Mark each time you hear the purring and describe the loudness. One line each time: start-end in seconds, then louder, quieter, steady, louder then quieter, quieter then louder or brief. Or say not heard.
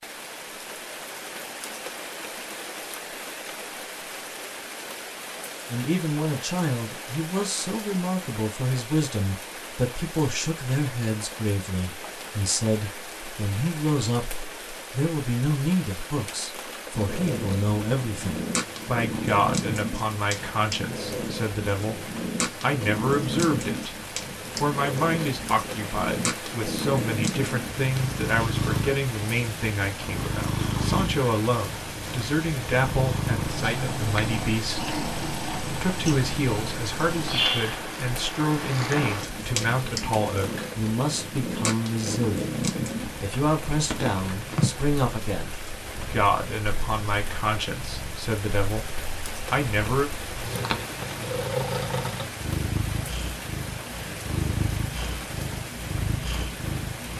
16.9-57.1 steady.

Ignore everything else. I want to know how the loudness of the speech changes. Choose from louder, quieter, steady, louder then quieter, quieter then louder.
steady.